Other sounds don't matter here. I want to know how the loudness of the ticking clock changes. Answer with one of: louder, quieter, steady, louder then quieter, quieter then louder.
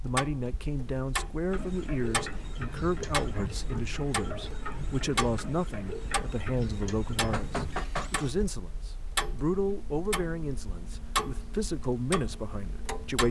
steady.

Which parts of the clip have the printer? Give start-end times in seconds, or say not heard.
1.5-8.3.